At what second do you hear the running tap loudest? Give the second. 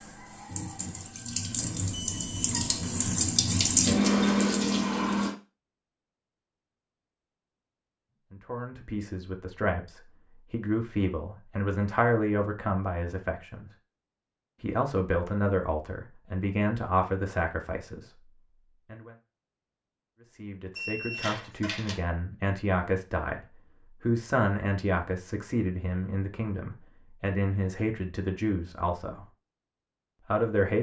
4 s.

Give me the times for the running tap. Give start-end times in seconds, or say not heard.
0.0-5.3.